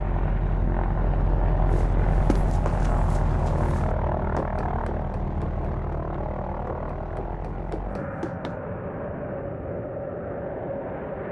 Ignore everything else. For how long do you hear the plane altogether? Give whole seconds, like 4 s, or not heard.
11 s.